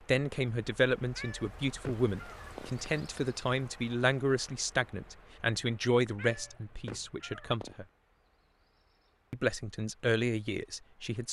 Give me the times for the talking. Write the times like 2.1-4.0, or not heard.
0.1-7.8, 9.3-11.2.